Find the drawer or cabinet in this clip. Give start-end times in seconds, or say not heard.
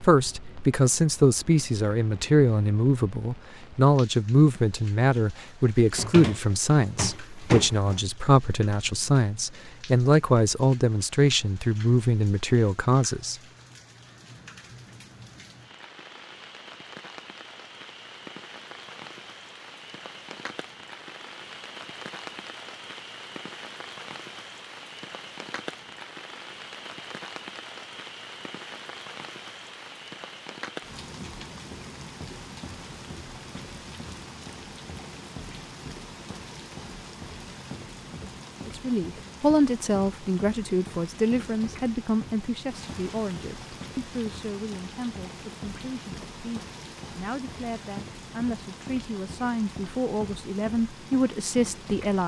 5.9-8.0.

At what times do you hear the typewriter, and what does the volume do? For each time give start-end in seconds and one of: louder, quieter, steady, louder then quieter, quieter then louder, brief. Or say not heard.
not heard.